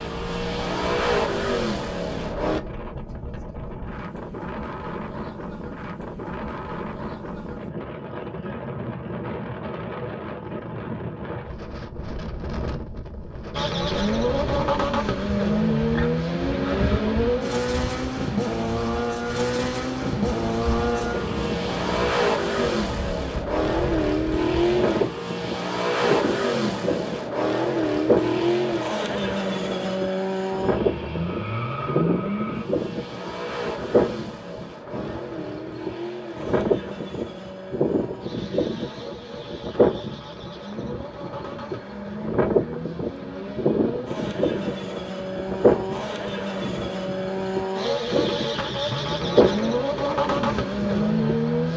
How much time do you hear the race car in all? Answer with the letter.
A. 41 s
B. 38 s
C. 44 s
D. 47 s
A.